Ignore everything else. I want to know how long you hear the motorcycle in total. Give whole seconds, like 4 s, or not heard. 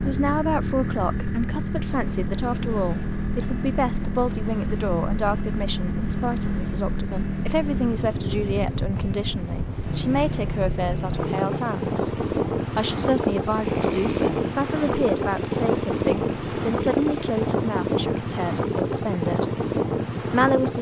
21 s.